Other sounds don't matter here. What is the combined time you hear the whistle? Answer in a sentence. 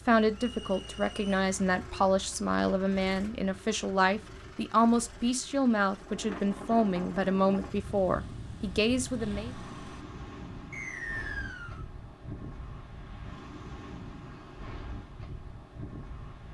You can hear the whistle for 2 seconds altogether.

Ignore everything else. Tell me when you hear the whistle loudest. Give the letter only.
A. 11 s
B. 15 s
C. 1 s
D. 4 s
A.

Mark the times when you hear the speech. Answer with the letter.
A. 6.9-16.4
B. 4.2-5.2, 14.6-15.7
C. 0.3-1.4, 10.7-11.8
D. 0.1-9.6
D.